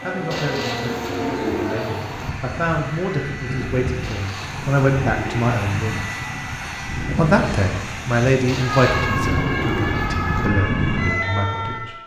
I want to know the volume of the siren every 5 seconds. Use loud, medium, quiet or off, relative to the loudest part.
medium, loud, loud.